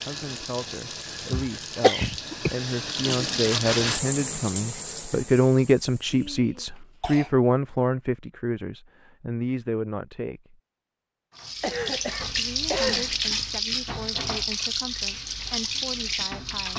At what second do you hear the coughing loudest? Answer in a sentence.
The volume of the coughing peaks at 2 seconds.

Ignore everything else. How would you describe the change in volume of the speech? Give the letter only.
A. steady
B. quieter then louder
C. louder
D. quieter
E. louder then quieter
E.